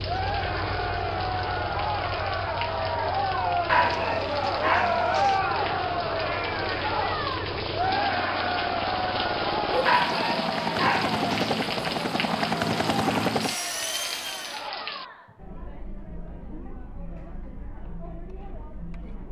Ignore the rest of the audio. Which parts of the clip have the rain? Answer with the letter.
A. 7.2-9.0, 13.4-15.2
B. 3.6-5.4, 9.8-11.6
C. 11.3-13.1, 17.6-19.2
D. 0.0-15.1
D.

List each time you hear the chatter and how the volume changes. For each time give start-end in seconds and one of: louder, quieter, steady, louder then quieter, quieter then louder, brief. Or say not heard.
0.0-19.2 quieter.